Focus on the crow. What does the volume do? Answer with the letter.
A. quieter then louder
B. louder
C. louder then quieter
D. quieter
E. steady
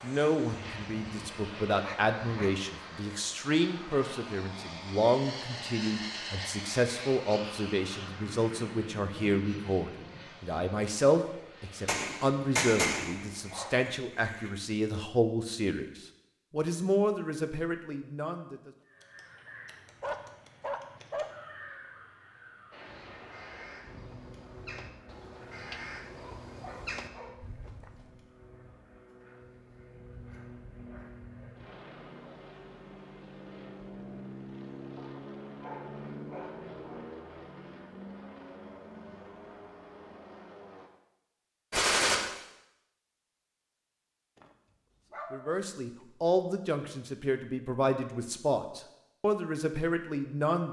B.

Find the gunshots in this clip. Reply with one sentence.
You can hear the gunshots from 11.8 to 14.5 s and from 41.7 to 42.1 s.